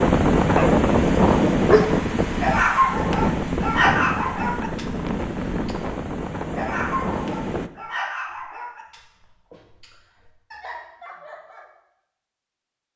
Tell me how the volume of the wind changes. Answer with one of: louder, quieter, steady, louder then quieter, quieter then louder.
quieter.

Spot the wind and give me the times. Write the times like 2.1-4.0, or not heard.
0.0-7.7.